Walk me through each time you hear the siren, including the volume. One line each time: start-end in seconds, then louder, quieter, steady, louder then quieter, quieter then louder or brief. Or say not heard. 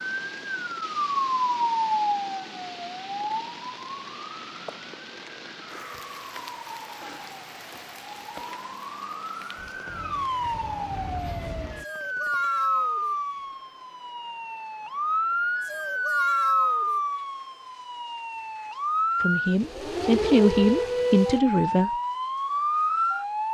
0.0-23.4 quieter then louder.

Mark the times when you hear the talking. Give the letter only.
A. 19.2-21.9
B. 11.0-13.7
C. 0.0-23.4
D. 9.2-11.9
A.